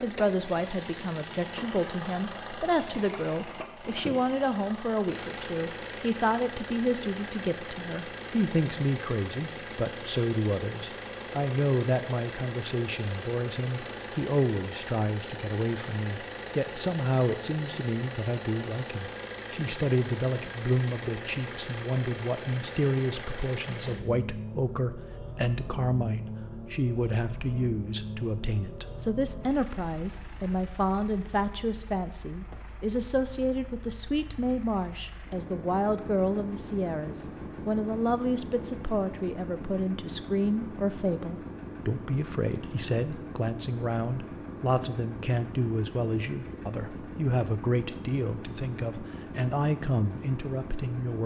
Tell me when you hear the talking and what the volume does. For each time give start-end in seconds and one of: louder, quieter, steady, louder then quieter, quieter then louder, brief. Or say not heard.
0.0-51.2 steady.